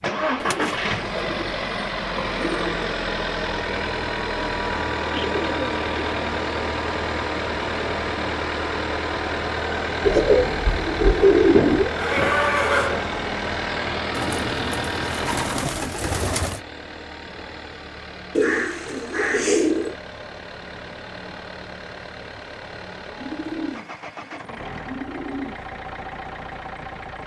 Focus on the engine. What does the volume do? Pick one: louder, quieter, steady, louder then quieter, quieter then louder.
quieter.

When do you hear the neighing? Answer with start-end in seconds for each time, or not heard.
11.8-13.2.